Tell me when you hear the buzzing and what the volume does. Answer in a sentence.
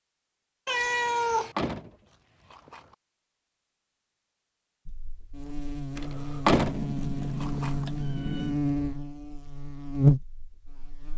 The buzzing can be heard from 4.8 to 11.1 s, getting louder.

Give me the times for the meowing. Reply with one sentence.
The meowing can be heard from 0.7 to 1.6 s and from 6.7 to 8.6 s.